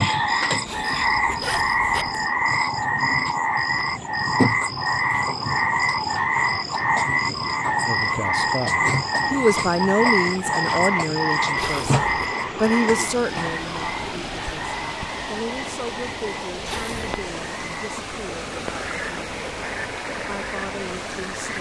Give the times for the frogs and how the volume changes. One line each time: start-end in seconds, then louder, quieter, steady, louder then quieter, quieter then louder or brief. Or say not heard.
0.0-21.5 quieter.